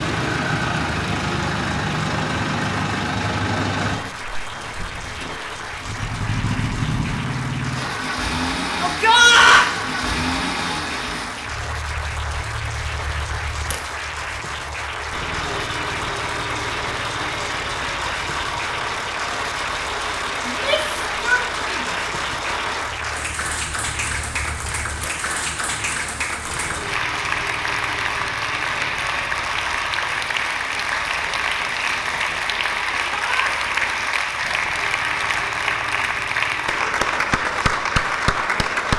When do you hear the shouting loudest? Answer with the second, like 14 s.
9 s.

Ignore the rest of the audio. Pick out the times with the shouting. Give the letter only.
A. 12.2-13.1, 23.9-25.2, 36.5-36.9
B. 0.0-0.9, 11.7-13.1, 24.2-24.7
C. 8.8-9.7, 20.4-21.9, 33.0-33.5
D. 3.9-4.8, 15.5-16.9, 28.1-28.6
C.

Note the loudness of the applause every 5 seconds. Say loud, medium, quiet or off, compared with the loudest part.
medium, medium, medium, medium, medium, loud, loud, loud.